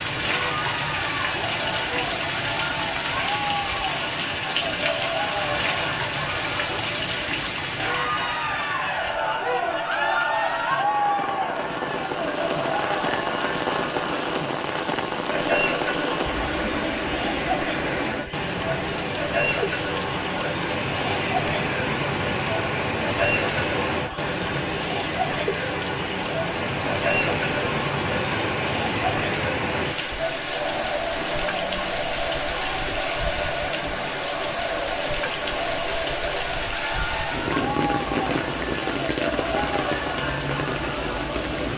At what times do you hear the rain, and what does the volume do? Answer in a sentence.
You can hear the rain from 0.0 to 41.7 s, at a steady volume.